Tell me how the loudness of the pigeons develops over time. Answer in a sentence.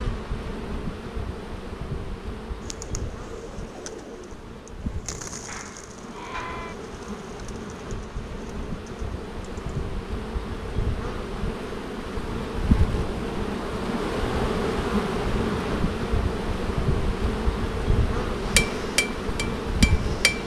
The volume of the pigeons goes down.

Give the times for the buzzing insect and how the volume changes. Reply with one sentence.
The buzzing insect can be heard from 0.0 to 20.4 s, getting louder.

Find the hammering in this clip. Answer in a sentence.
The hammering can be heard from 18.4 to 20.4 s.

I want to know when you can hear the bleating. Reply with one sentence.
You can hear the bleating from 5.5 to 6.8 s.